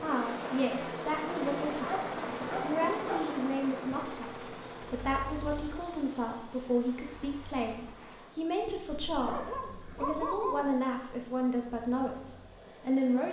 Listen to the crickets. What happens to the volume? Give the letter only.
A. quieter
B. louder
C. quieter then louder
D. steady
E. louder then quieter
A.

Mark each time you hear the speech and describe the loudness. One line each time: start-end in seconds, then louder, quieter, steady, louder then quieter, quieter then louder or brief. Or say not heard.
0.0-13.2 steady.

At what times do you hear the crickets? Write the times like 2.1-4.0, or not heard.
3.5-13.1.